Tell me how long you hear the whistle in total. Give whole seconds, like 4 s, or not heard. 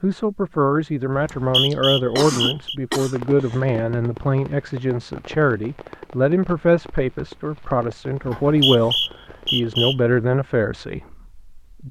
3 s.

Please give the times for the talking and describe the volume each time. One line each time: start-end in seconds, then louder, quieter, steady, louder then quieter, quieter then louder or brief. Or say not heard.
0.0-11.8 steady.